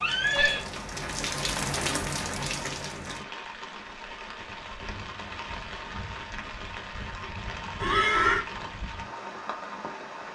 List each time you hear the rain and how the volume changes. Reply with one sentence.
The rain can be heard from 0.0 to 10.3 s, getting quieter.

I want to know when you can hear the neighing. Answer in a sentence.
You can hear the neighing from 0.0 to 0.7 s and from 7.8 to 8.4 s.